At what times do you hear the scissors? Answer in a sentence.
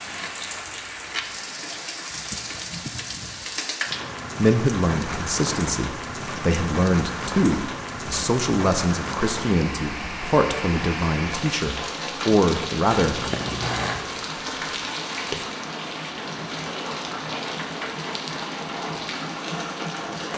The scissors can be heard from 0.1 to 1.4 s and from 12.8 to 13.9 s.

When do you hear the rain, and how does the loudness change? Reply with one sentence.
You can hear the rain from 0.0 to 20.3 s, at a steady volume.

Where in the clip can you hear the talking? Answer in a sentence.
You can hear the talking from 4.3 to 13.3 s.